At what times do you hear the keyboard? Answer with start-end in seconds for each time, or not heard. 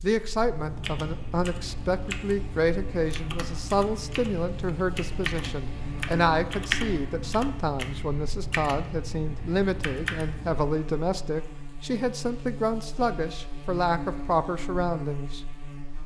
0.5-10.7.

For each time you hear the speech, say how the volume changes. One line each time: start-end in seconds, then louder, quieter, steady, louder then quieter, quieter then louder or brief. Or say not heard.
0.0-15.4 steady.